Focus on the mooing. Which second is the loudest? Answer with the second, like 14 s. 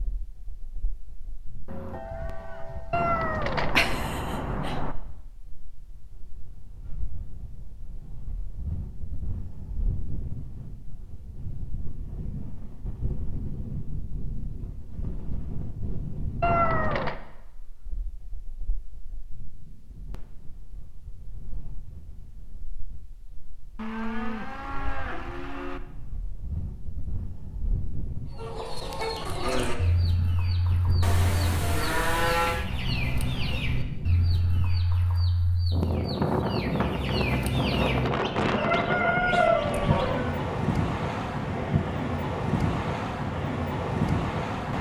32 s.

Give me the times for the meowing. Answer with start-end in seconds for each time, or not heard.
2.9-5.0, 16.4-17.1, 31.6-33.6.